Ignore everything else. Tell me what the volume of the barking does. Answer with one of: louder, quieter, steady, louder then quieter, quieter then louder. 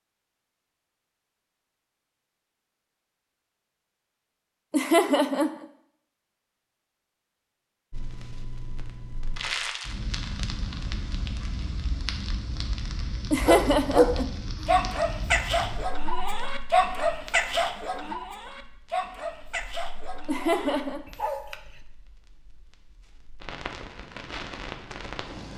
quieter.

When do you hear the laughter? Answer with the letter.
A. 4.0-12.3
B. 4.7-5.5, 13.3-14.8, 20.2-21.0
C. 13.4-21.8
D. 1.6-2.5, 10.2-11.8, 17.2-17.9
B.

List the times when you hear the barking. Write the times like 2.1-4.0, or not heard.
13.4-21.8.